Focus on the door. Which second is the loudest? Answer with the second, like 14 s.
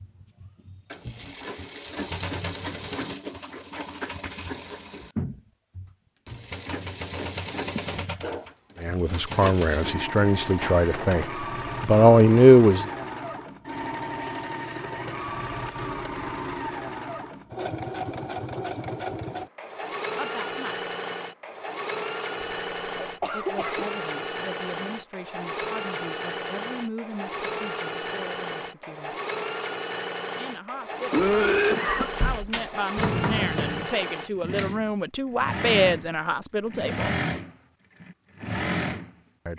33 s.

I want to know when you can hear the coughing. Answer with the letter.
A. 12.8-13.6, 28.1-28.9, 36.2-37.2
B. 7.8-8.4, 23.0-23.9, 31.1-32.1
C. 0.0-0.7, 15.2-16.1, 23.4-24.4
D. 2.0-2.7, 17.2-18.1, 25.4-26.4
B.